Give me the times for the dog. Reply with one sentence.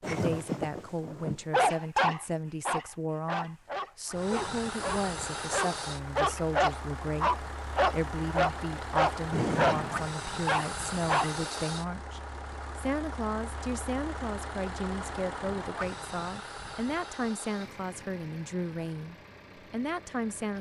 You can hear the dog from 0.0 to 11.4 s.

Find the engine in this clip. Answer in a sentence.
You can hear the engine from 4.0 to 20.5 s.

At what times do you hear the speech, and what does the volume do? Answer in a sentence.
You can hear the speech from 0.1 to 20.5 s, at a steady volume.